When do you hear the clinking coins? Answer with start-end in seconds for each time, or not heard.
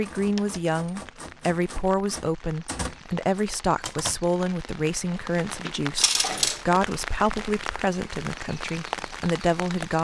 0.3-0.9, 6.0-6.6.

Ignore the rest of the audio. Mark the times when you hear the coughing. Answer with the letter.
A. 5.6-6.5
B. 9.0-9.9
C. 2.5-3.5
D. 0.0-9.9
A.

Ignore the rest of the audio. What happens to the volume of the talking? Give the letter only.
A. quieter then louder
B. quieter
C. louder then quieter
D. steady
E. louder
D.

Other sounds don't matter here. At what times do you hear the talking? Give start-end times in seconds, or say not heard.
0.0-9.9.